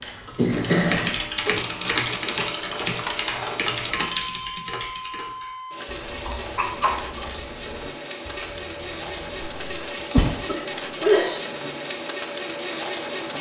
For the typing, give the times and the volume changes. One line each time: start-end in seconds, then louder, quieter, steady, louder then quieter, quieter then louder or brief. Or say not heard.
0.0-9.9 quieter.